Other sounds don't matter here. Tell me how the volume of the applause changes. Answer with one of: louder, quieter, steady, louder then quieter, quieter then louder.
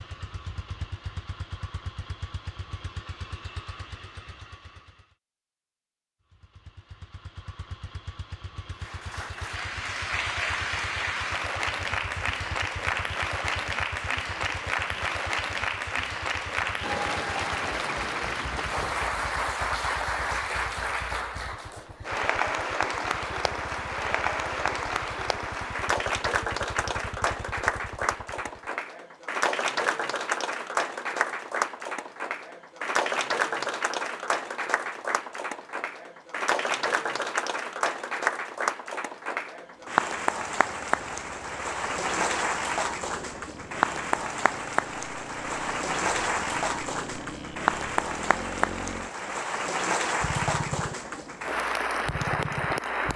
steady.